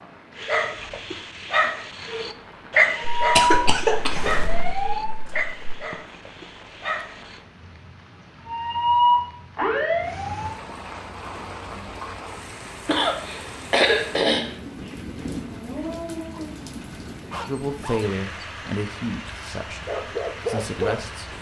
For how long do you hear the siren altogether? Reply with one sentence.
You can hear the siren for 4 seconds altogether.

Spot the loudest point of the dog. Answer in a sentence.
The volume of the dog peaks at 3 seconds.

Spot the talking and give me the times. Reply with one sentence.
You can hear the talking from 17.4 to 21.3 s.